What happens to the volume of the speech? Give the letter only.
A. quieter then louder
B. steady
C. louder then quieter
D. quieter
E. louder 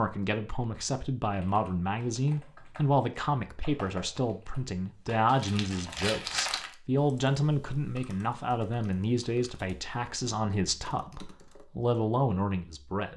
B.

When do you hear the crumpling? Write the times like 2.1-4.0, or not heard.
5.2-6.8.